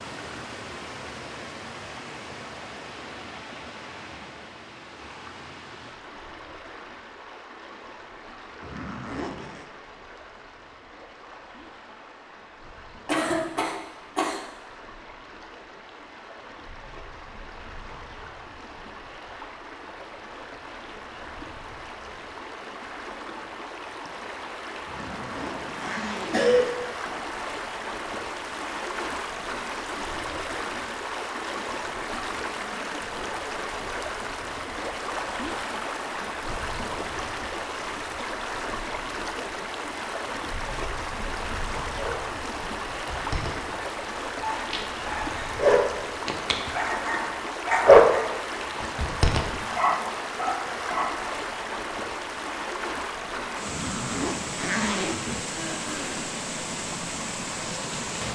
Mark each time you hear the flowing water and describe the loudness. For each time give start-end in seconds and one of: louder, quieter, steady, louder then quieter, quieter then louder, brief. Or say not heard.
0.0-58.2 louder.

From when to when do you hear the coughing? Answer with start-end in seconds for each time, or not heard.
13.1-14.4, 26.3-26.8, 55.5-56.4.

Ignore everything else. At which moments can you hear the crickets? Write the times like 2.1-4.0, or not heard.
not heard.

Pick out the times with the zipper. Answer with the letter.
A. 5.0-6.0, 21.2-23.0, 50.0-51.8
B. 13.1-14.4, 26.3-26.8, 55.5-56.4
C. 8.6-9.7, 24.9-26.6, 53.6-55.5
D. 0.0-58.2
C.